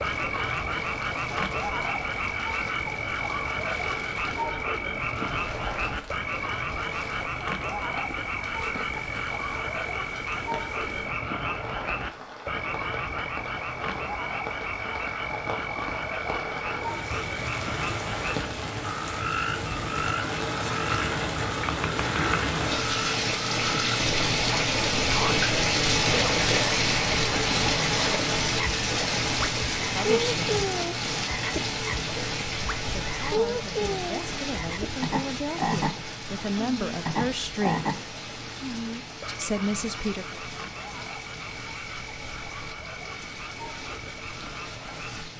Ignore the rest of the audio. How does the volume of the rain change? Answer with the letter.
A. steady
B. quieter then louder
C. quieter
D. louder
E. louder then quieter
E.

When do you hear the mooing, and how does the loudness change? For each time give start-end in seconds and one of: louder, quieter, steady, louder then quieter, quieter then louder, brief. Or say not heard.
not heard.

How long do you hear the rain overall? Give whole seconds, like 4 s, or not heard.
45 s.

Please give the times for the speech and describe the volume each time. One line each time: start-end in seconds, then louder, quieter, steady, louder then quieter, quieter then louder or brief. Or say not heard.
29.9-30.6 brief
32.9-37.9 louder
39.2-40.4 brief.